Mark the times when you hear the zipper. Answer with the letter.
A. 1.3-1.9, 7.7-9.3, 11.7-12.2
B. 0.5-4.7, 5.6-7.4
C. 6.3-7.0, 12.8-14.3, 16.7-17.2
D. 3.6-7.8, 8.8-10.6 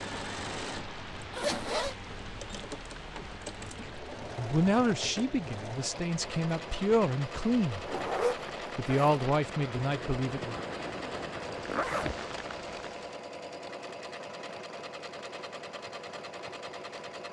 A.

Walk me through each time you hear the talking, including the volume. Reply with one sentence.
You can hear the talking from 3.6 to 7.8 s, getting quieter then louder; and briefly from 8.8 to 10.6 s.